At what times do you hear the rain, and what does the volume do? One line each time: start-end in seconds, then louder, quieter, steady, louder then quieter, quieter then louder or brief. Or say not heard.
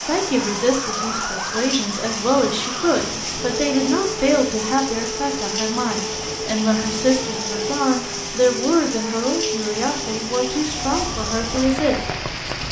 0.0-12.6 steady.